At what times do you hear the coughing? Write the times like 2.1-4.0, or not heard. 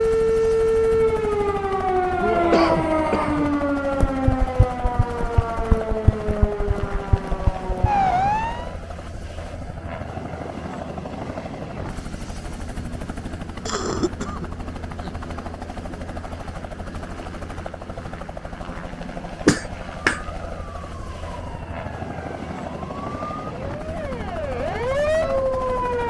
2.5-3.5, 13.7-15.2, 19.4-20.2.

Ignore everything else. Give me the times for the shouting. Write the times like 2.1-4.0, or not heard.
2.1-3.5.